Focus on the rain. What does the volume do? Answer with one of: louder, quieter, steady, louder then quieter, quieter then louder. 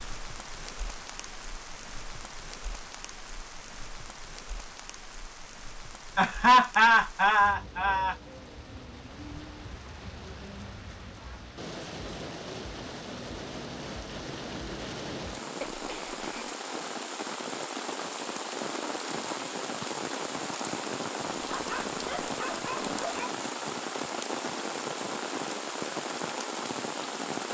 louder.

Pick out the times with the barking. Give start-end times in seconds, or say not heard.
21.5-23.4.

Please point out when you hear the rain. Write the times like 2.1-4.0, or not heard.
0.0-27.4.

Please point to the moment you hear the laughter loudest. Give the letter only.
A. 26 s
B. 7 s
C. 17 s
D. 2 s
B.